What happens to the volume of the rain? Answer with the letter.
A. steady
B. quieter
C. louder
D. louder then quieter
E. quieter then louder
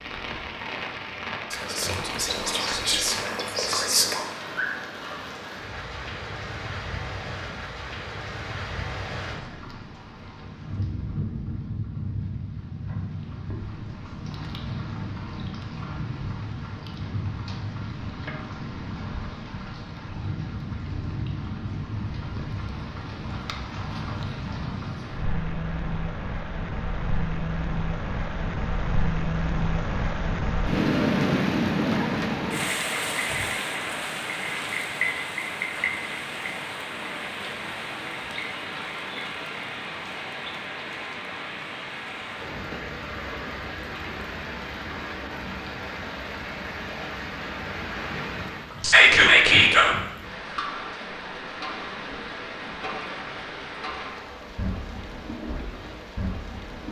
D.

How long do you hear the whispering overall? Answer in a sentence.
The whispering can be heard for 4 seconds in total.